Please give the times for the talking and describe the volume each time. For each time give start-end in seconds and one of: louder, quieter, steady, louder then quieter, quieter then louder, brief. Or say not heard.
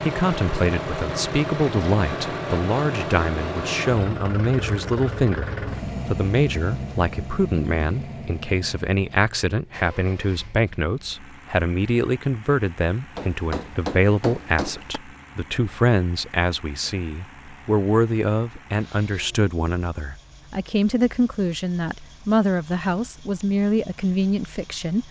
0.0-25.0 steady.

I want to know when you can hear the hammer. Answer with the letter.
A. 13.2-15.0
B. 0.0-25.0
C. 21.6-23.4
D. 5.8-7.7
A.